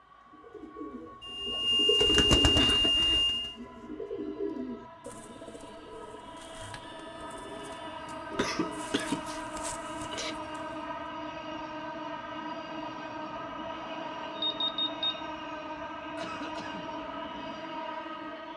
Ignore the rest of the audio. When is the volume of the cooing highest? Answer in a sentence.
The loudest moment of the cooing is at 2 seconds.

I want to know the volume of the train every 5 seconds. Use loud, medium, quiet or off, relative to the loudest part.
quiet, loud, loud, loud.